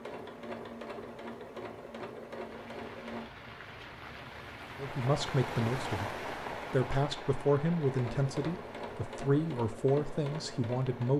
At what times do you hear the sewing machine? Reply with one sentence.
The sewing machine can be heard from 0.0 to 3.3 s and from 7.8 to 11.1 s.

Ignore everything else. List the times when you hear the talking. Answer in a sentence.
You can hear the talking from 4.8 to 11.1 s.